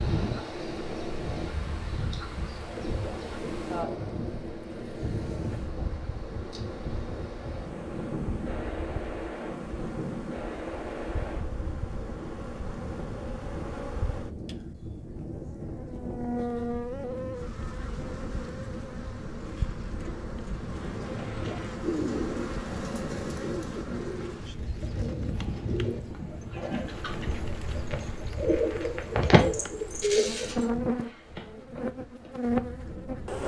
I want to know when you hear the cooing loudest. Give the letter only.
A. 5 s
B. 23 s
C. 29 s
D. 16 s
C.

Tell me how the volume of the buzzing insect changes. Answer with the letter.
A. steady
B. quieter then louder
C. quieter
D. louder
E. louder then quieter
D.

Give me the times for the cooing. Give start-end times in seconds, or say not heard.
20.9-30.6.